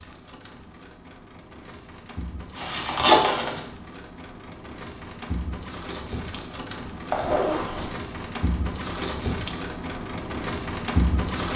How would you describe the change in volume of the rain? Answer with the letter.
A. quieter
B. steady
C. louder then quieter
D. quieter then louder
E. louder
E.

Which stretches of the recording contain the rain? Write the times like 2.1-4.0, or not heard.
0.0-11.5.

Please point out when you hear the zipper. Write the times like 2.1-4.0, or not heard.
2.5-3.6, 7.1-7.9.